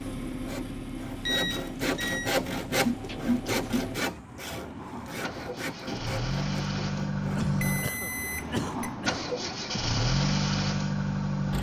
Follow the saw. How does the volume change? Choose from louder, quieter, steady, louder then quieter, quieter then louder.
louder then quieter.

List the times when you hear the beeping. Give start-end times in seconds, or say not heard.
1.2-2.3, 7.6-8.9.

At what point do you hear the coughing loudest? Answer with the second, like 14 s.
3 s.